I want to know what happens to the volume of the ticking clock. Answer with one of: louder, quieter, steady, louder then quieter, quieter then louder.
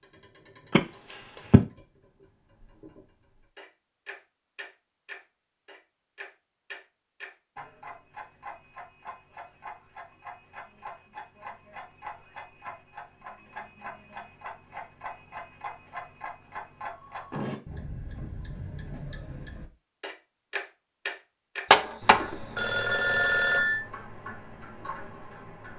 louder.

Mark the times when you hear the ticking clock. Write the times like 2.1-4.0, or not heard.
0.0-25.7.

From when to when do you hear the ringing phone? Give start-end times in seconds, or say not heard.
0.7-1.6, 21.7-23.8.